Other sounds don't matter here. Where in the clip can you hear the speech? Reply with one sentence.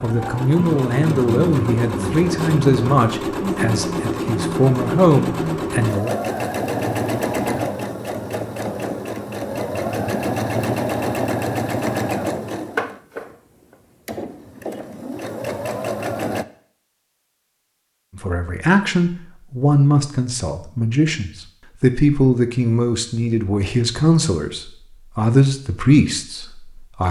The speech can be heard from 0.0 to 6.2 s and from 18.1 to 27.0 s.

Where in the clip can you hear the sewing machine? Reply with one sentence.
The sewing machine can be heard from 0.0 to 16.4 s.